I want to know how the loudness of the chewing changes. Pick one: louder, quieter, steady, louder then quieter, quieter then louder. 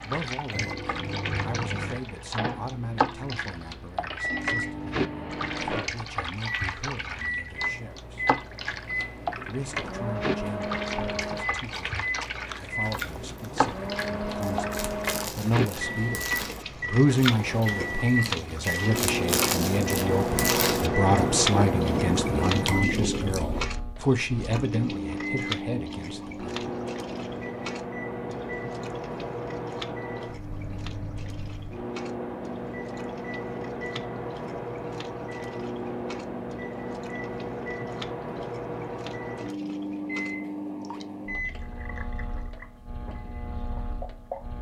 louder.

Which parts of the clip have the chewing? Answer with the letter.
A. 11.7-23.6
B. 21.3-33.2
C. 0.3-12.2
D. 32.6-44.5
A.